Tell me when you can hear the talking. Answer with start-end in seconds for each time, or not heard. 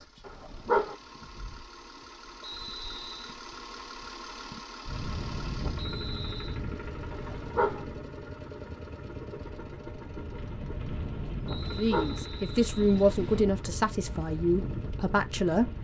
11.7-15.7.